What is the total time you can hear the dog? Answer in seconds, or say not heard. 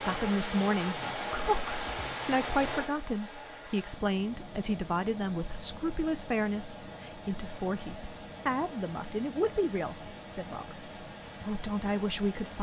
not heard.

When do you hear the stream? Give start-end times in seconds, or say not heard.
0.0-12.5.